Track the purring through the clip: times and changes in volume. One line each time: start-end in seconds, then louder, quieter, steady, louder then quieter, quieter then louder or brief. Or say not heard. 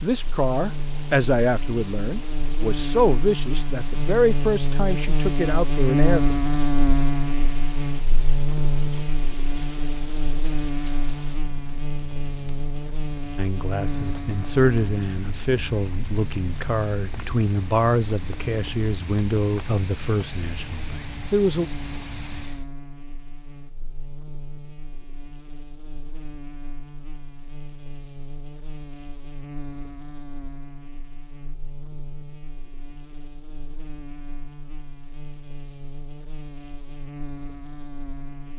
not heard.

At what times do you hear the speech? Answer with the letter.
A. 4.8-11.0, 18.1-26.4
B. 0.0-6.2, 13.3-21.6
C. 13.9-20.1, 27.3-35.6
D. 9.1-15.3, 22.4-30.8
B.